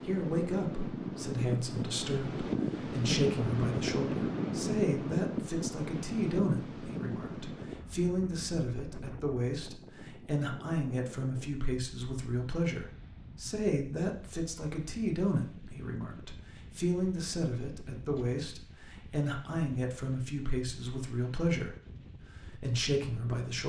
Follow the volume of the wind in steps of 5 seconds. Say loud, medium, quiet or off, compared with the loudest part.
loud, medium, quiet, quiet, quiet.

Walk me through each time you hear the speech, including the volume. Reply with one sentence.
You can hear the speech from 0.0 to 21.8 s, at a steady volume; and briefly from 22.5 to 23.6 s.